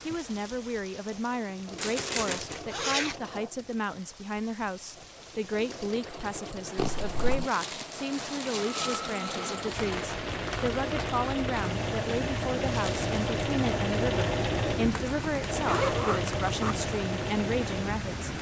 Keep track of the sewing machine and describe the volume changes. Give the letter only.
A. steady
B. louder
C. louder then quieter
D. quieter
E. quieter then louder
B.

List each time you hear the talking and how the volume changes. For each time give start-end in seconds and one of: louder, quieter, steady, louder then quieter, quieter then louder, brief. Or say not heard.
0.1-18.3 steady.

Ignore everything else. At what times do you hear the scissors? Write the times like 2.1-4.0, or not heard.
not heard.